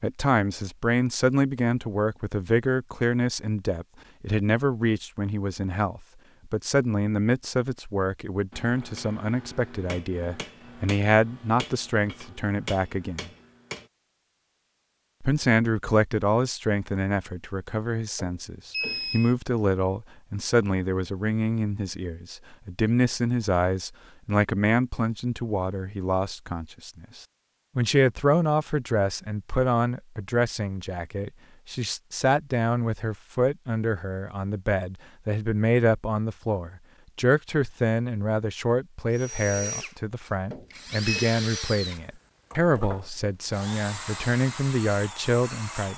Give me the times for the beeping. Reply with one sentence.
The beeping can be heard from 18.1 to 19.4 s and from 40.5 to 41.4 s.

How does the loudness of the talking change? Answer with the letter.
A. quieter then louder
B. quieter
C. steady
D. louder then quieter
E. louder
C.